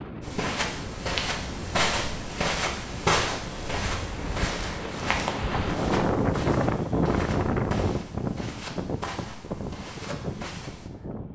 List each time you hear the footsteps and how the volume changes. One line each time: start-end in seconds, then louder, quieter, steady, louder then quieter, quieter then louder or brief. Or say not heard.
0.2-10.9 quieter.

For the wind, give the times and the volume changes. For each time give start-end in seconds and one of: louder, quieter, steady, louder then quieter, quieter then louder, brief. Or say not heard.
0.0-11.3 louder then quieter.